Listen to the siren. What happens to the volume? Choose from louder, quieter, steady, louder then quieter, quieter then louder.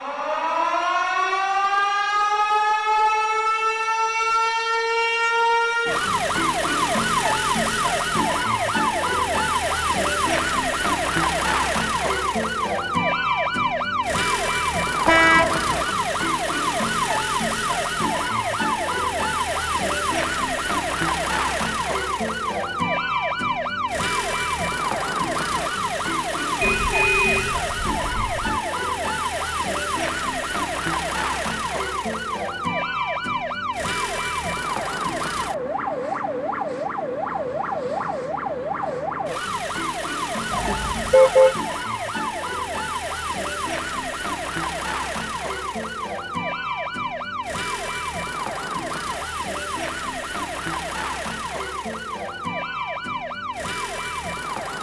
quieter.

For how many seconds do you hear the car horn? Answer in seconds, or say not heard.
4 s.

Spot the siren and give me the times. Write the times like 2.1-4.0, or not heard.
0.0-54.7.